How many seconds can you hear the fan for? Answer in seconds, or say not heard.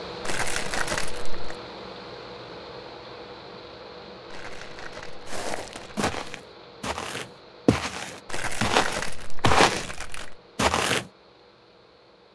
12 s.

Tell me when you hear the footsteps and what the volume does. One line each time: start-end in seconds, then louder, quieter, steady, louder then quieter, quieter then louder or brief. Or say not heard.
5.2-9.8 louder
10.6-11.1 brief.